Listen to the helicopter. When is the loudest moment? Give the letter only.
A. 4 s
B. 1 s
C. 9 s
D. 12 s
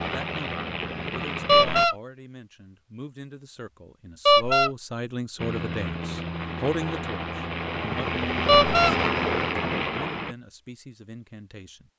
C.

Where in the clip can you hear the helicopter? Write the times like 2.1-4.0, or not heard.
0.0-1.9, 5.3-10.3.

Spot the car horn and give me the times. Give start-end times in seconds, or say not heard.
1.4-1.9, 4.2-4.7, 8.4-8.9.